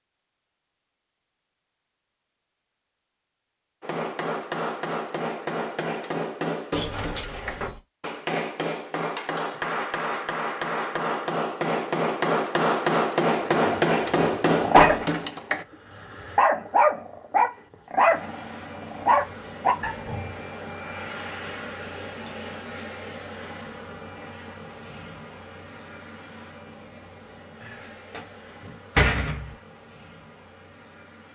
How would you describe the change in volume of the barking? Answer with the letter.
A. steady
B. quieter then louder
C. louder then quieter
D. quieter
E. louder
B.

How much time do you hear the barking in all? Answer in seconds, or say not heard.
7 s.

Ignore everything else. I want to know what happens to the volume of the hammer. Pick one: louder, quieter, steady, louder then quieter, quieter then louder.
louder.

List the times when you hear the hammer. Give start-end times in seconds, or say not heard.
3.8-15.7.